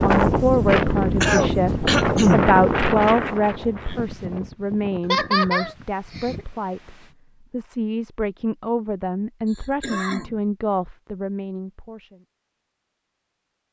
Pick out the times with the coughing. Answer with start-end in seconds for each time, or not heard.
1.2-2.5, 5.0-6.4, 9.4-10.4.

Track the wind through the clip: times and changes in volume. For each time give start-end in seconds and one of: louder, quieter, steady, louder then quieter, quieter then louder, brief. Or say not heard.
0.0-7.2 quieter.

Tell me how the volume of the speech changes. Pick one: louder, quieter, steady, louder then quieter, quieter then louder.
quieter.